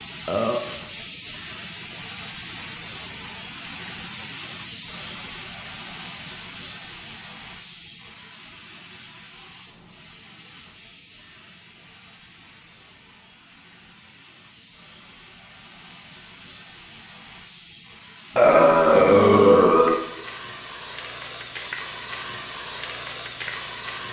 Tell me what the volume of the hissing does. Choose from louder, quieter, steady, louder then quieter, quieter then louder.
quieter then louder.